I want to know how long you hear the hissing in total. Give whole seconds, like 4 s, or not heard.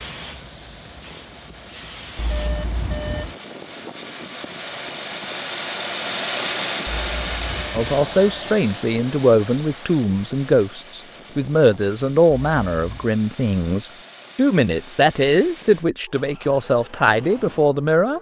3 s.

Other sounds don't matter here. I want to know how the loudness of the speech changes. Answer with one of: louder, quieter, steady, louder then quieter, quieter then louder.
steady.